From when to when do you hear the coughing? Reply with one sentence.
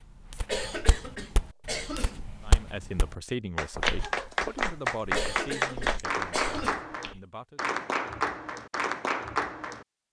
You can hear the coughing from 0.5 to 2.3 s and from 5.1 to 6.8 s.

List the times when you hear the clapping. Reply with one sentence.
The clapping can be heard from 3.5 to 9.8 s.